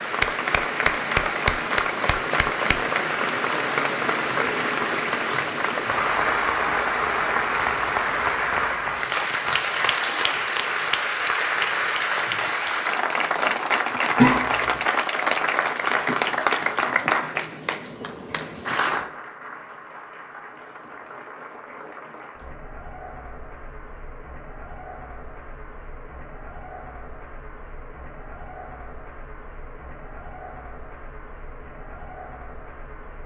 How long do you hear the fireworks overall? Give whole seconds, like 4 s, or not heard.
not heard.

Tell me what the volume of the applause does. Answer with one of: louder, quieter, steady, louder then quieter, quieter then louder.
quieter.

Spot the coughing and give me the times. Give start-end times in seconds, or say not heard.
14.2-14.6.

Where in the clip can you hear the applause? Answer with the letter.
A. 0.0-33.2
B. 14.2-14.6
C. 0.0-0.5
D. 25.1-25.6
A.